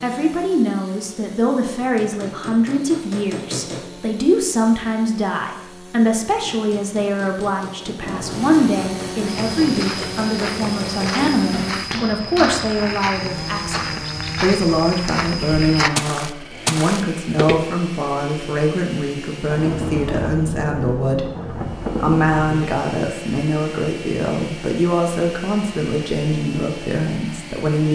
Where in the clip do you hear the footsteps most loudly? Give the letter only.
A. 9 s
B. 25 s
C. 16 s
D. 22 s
C.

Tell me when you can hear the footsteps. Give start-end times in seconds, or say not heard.
9.2-17.6.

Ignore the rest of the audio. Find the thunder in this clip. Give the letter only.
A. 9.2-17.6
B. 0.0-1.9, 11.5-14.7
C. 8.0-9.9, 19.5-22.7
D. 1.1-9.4
C.